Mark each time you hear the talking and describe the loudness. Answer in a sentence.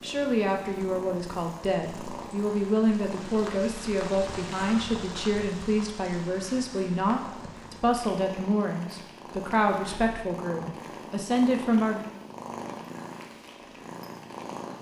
The talking can be heard from 0.0 to 12.1 s, at a steady volume.